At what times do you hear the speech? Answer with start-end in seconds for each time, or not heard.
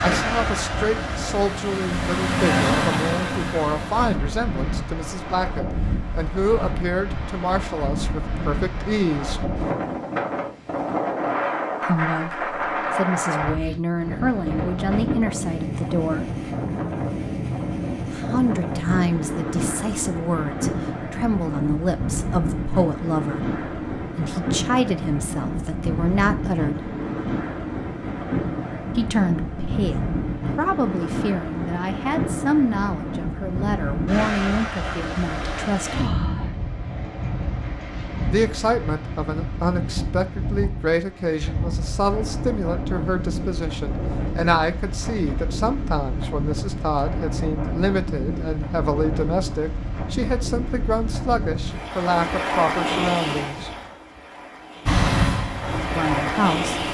0.0-9.4, 11.8-16.3, 18.1-26.9, 28.9-36.2, 38.3-53.7, 56.0-56.8.